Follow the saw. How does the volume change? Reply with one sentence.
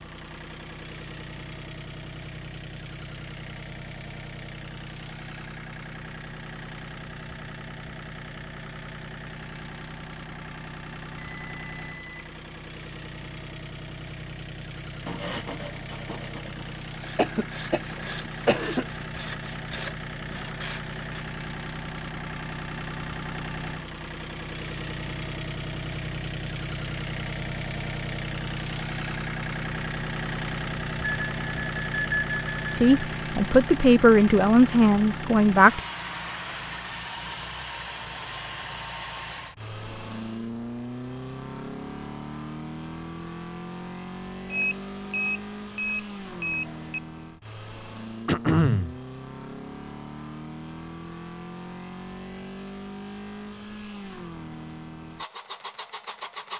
The loudness of the saw goes down, then up.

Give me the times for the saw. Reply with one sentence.
The saw can be heard from 14.8 to 21.2 s.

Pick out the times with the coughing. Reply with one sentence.
You can hear the coughing from 17.1 to 18.9 s and from 48.2 to 49.0 s.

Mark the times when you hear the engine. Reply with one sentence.
The engine can be heard from 0.0 to 56.5 s.